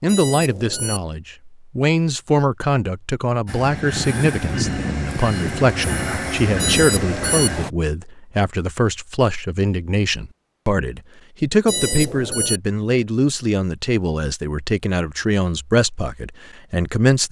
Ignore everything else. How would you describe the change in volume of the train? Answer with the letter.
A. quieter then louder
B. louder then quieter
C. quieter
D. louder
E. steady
E.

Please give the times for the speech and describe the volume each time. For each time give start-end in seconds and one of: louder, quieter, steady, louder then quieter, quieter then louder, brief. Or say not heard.
0.0-17.2 steady.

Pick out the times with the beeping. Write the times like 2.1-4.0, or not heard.
0.1-1.0, 6.5-7.5, 11.7-12.6.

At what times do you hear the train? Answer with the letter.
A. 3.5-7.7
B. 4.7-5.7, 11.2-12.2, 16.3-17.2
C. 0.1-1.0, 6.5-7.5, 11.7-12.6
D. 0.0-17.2
A.